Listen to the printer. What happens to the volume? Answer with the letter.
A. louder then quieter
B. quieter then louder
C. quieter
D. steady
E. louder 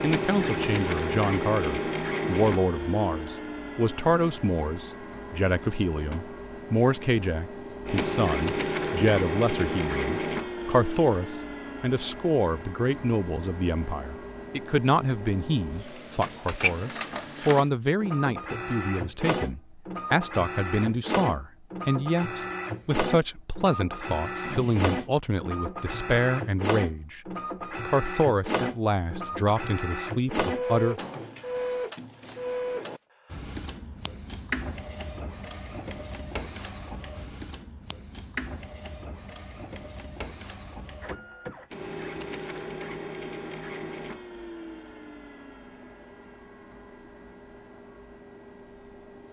C.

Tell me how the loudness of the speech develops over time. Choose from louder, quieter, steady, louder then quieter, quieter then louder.
steady.